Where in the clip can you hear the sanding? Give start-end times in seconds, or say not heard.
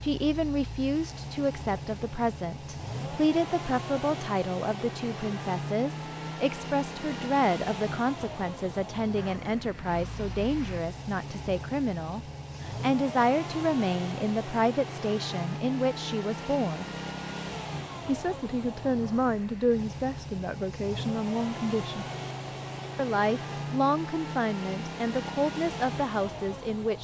not heard.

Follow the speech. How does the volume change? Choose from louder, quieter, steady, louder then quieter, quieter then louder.
steady.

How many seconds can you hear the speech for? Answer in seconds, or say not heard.
25 s.